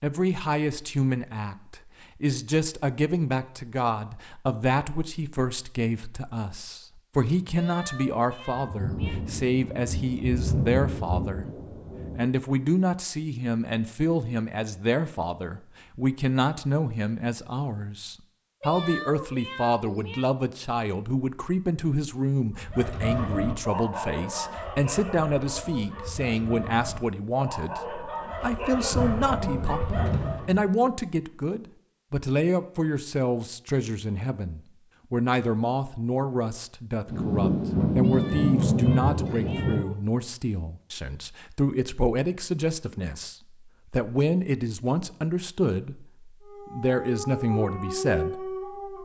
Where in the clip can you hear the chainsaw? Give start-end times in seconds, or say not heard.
not heard.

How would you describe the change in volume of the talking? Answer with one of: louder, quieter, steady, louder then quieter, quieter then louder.
steady.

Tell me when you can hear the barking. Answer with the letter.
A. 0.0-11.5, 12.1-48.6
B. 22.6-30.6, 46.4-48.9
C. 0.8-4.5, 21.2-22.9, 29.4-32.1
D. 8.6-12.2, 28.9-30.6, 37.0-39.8
B.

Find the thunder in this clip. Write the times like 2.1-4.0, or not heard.
8.6-12.2, 28.9-30.6, 37.0-39.8.